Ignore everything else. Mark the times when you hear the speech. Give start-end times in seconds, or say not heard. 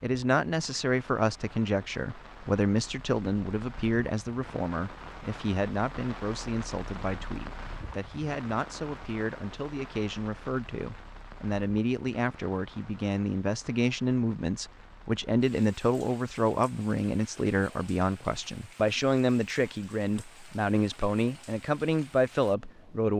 0.0-23.1.